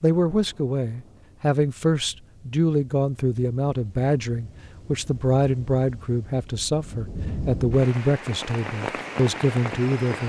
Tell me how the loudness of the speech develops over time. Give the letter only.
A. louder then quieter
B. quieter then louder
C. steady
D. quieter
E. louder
C.